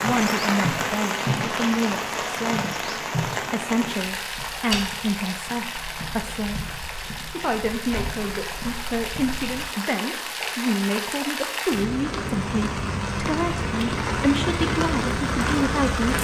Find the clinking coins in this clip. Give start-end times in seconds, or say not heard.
not heard.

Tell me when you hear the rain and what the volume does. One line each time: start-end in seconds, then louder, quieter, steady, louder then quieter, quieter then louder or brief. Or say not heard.
0.0-16.1 quieter then louder.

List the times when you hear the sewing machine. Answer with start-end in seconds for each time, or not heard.
not heard.